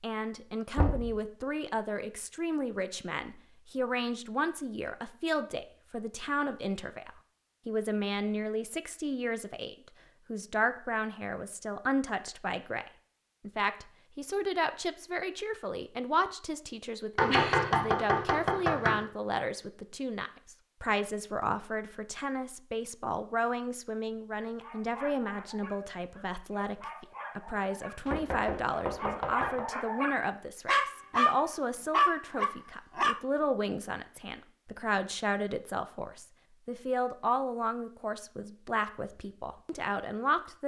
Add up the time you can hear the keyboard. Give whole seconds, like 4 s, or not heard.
not heard.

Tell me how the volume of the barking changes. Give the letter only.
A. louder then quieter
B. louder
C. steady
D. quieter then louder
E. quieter
B.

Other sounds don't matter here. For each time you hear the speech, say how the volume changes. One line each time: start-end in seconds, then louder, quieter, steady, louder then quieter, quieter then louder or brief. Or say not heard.
0.0-40.6 steady.